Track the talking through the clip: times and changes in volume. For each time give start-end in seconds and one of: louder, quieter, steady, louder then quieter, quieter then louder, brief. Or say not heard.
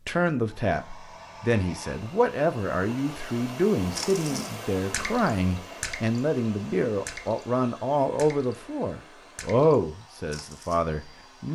0.1-11.5 steady.